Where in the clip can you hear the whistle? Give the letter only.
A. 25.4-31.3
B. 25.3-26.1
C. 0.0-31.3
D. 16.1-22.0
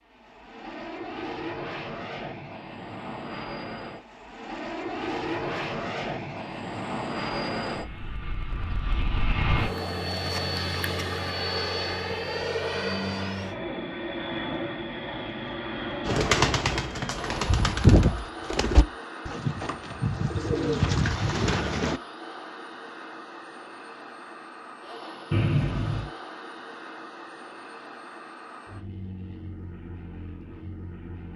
B.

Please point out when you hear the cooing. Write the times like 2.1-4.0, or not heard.
16.1-22.0.